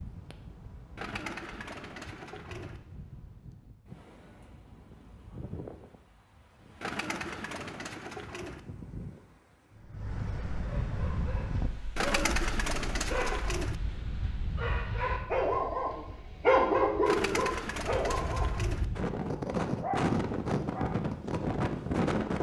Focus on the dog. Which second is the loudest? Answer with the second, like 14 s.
17 s.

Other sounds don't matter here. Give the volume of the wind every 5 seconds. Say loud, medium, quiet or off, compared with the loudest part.
quiet, quiet, medium, medium, loud.